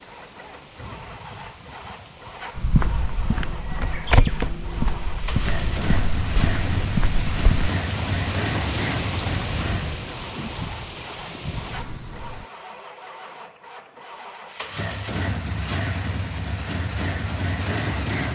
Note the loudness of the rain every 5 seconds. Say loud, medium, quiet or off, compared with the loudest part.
quiet, loud, loud, off.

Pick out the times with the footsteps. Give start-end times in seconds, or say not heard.
2.5-7.7.